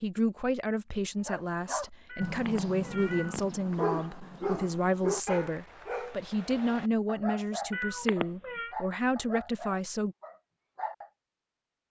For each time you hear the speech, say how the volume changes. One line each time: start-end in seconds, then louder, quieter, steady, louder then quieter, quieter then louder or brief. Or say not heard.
0.0-10.2 steady.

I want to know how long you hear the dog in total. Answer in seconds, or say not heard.
10 s.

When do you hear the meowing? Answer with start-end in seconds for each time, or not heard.
2.0-3.5, 7.7-8.8.